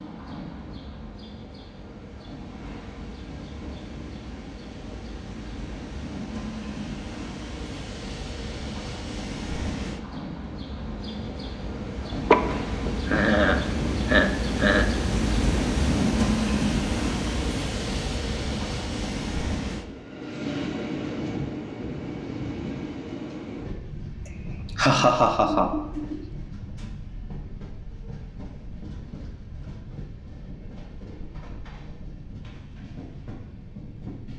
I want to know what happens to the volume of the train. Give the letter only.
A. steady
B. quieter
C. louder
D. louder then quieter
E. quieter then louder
D.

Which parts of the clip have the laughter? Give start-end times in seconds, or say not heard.
12.3-14.8, 24.2-26.2.